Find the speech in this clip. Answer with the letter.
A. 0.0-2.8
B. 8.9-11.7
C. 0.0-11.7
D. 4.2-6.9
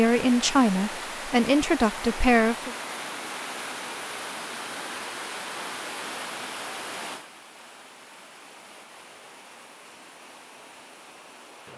A.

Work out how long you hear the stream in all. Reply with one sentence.
The stream can be heard for 12 seconds in total.